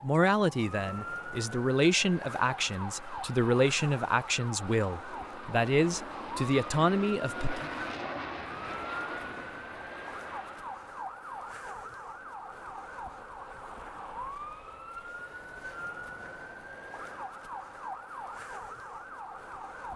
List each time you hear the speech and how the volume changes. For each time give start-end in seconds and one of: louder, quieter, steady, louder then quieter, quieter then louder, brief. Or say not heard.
0.0-7.7 steady.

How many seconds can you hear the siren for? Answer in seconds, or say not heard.
20 s.